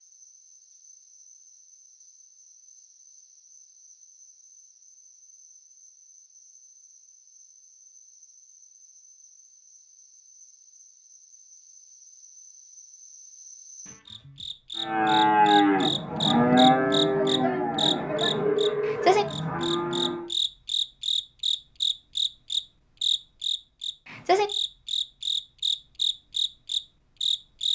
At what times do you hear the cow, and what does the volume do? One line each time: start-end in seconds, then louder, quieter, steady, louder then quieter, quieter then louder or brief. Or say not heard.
14.8-20.3 quieter.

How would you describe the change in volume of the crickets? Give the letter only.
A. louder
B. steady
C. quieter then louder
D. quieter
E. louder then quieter
A.